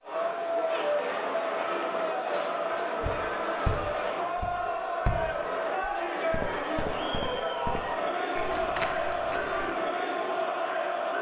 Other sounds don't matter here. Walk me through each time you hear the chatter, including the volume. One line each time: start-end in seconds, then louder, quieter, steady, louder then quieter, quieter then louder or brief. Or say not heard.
0.0-11.1 steady.